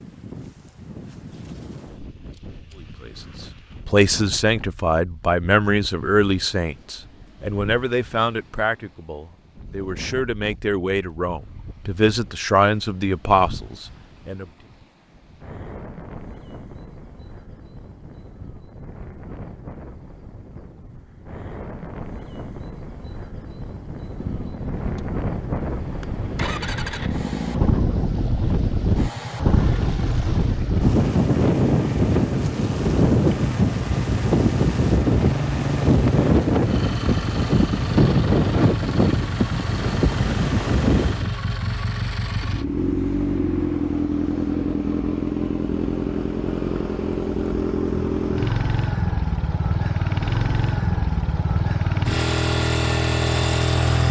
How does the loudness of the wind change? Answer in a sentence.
The volume of the wind goes up.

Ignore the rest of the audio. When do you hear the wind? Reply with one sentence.
You can hear the wind from 0.0 to 41.3 s.